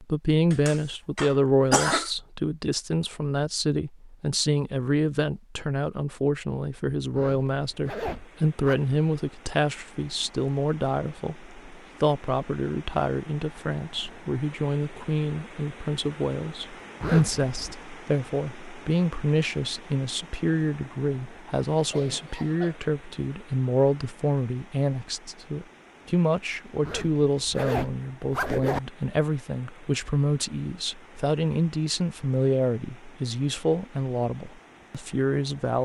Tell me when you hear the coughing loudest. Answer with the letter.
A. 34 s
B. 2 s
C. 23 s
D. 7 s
B.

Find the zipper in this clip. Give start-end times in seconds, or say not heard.
7.1-8.8, 17.0-17.8, 26.8-28.8.